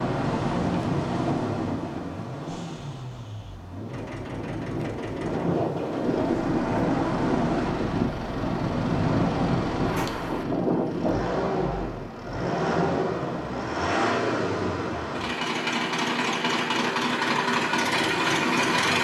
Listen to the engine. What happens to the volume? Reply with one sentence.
The volume of the engine goes up.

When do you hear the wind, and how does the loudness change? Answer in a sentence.
You can hear the wind from 0.0 to 11.2 s, getting quieter then louder.